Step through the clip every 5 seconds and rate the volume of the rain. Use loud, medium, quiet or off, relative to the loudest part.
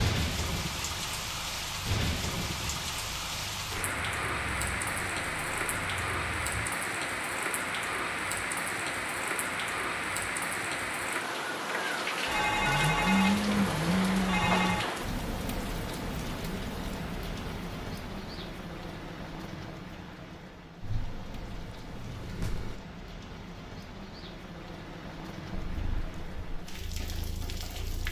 loud, loud, loud, medium, quiet, medium.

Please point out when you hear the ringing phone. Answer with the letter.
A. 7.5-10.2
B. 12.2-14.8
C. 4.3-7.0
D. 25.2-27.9
B.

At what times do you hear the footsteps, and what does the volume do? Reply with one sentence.
The footsteps can't be heard in this clip.